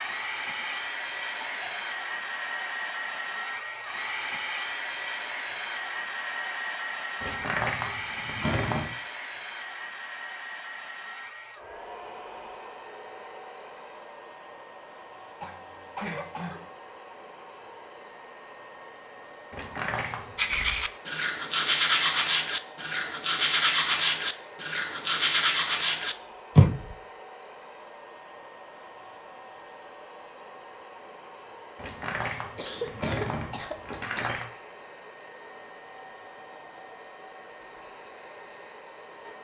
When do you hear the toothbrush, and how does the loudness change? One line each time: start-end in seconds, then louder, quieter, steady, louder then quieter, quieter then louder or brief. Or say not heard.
20.4-26.9 steady.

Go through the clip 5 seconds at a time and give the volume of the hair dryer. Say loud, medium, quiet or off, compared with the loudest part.
loud, loud, medium, quiet, quiet, quiet, quiet, quiet.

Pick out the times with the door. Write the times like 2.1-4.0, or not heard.
7.2-8.8, 19.5-20.7, 31.8-34.5.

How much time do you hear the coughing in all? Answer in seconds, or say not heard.
4 s.